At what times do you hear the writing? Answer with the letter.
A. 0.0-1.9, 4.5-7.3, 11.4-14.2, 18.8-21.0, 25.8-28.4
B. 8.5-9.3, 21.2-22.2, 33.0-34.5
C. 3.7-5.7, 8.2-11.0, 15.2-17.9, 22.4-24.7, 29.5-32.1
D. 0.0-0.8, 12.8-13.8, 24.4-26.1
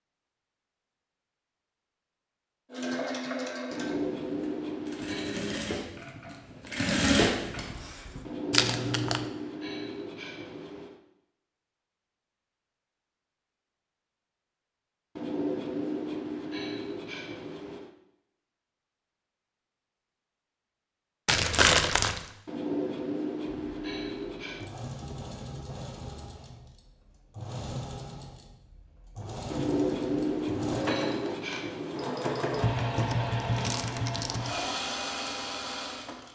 C.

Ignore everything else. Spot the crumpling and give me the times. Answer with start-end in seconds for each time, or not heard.
8.5-9.3, 21.2-22.2, 33.0-34.5.